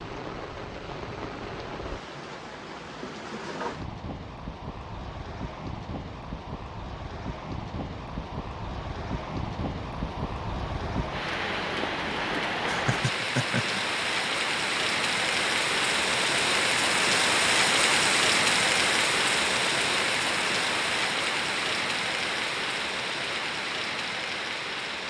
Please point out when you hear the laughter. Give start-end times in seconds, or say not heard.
12.7-13.8.